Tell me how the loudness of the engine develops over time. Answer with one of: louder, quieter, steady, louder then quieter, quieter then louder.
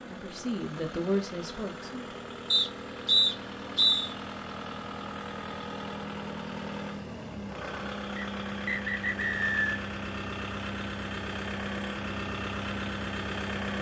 louder.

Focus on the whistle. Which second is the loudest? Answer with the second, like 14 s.
3 s.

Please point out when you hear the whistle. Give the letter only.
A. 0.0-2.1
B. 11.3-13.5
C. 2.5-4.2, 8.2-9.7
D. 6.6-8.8
C.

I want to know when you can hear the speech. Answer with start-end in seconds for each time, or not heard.
0.0-2.1.